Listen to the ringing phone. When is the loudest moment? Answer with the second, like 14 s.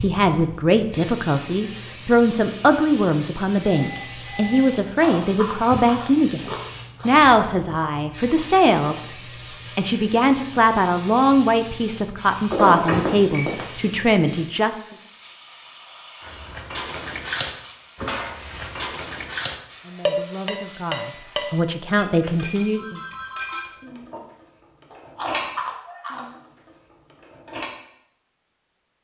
13 s.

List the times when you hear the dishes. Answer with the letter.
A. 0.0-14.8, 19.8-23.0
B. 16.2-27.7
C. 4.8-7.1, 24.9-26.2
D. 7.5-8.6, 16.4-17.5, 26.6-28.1
B.